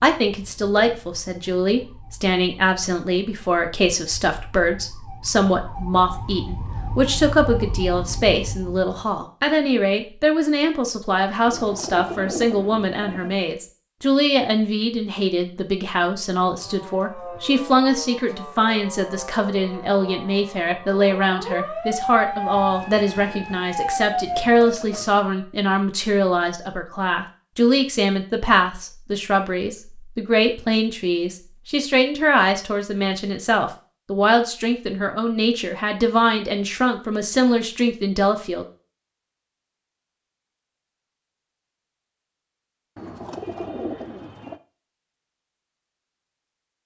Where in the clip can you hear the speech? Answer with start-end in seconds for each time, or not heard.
0.0-38.6.